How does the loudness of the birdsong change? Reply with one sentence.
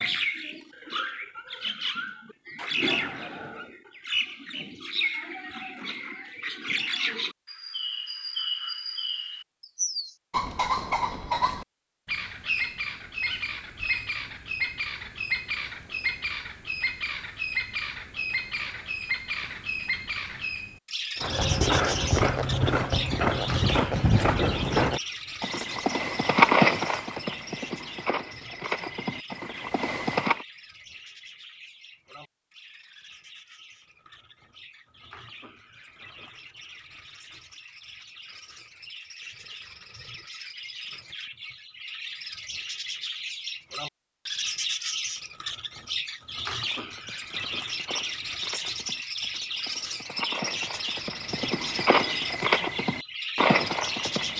The volume of the birdsong goes down, then up.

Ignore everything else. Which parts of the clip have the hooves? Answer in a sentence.
The hooves can be heard from 21.2 to 30.4 s and from 46.5 to 54.3 s.